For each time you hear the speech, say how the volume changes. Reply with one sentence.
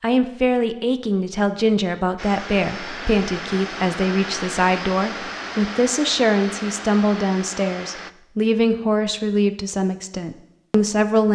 The speech can be heard from 0.0 to 11.2 s, at a steady volume.